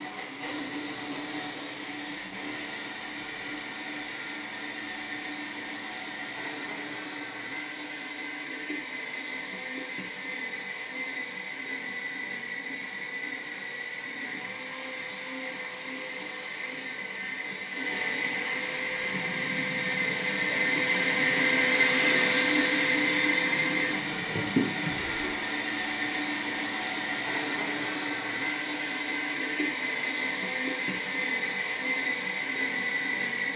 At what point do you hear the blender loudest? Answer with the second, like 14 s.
22 s.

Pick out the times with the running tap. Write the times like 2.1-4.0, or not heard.
18.9-25.5.